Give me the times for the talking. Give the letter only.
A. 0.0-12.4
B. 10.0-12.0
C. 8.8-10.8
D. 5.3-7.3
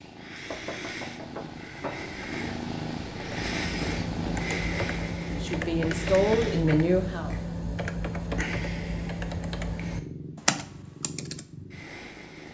D.